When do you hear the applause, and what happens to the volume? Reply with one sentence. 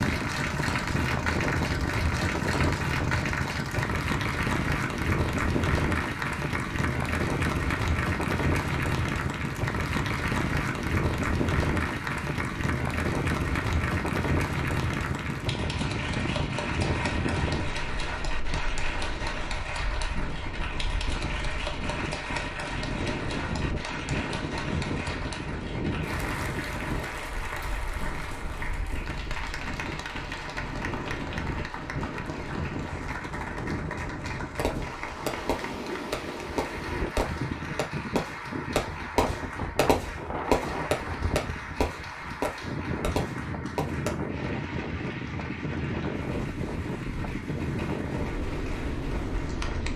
You can hear the applause from 0.0 to 49.9 s, getting quieter.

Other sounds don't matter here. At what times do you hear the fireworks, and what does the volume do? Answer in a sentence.
You can hear the fireworks from 34.5 to 44.1 s, getting louder then quieter.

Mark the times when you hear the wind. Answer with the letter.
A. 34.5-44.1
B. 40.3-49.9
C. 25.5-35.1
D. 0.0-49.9
D.